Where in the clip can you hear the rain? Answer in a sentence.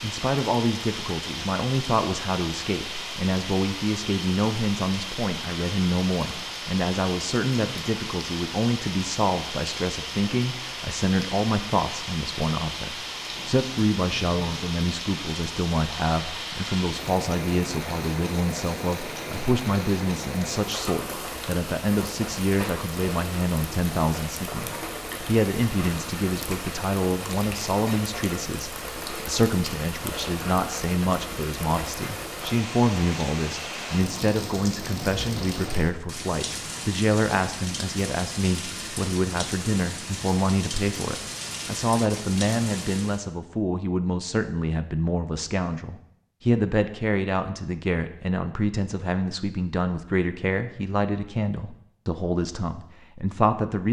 You can hear the rain from 0.0 to 43.2 s.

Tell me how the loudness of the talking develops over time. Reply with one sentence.
The volume of the talking stays about the same.